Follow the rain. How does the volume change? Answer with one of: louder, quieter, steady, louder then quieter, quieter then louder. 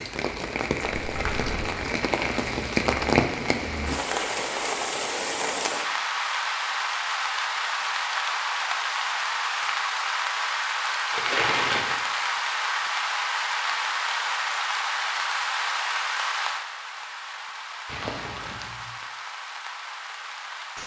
quieter.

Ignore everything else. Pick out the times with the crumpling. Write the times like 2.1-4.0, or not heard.
0.8-1.7, 11.1-12.0, 17.9-18.9.